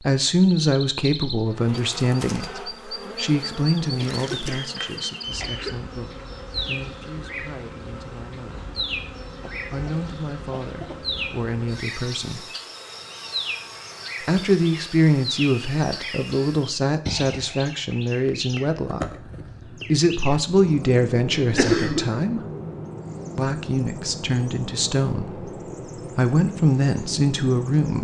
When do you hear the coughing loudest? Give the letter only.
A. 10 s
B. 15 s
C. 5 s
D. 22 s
D.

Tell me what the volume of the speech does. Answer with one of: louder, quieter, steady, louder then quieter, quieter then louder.
quieter then louder.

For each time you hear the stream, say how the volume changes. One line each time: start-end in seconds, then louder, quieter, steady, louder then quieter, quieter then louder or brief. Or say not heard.
not heard.